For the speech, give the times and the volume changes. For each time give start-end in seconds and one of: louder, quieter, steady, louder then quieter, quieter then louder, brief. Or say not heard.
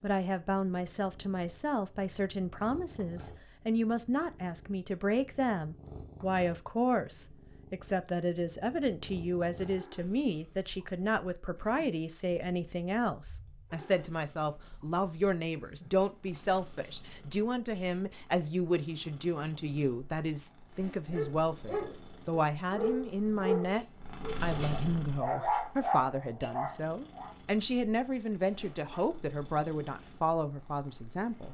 0.0-31.4 steady.